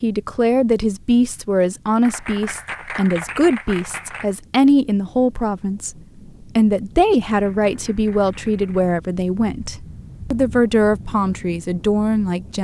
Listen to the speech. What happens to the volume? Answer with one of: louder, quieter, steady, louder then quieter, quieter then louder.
steady.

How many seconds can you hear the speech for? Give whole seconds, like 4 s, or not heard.
12 s.